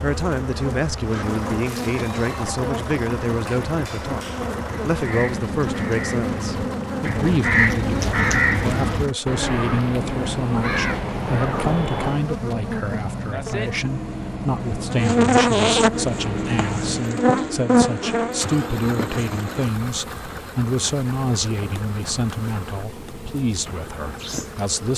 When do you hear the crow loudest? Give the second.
8 s.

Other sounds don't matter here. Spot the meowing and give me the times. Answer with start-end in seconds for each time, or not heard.
not heard.